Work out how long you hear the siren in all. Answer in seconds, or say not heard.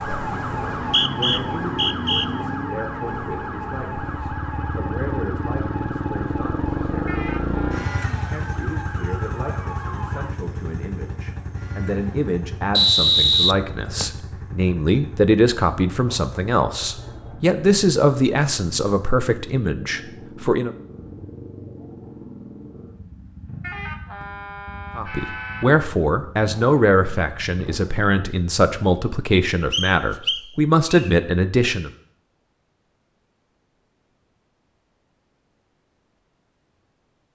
10 s.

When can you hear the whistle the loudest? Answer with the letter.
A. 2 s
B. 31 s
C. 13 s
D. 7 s
C.